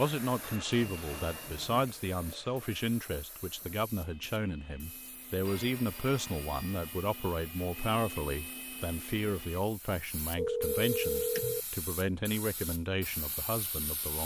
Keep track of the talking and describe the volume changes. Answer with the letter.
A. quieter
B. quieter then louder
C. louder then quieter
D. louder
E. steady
E.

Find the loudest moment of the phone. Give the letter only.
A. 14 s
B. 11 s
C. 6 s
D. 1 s
B.